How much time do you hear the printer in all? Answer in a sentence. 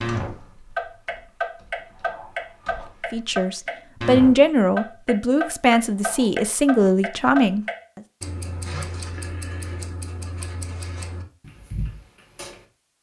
The printer can't be heard in this clip.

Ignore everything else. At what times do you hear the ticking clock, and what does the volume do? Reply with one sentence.
You can hear the ticking clock from 0.0 to 12.6 s, getting quieter.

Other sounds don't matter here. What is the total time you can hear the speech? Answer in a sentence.
The speech can be heard for 5 seconds in total.